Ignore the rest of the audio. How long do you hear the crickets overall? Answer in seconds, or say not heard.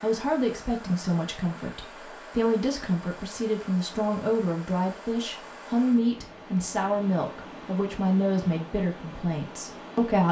not heard.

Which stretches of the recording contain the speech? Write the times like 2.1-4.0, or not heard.
0.0-10.2.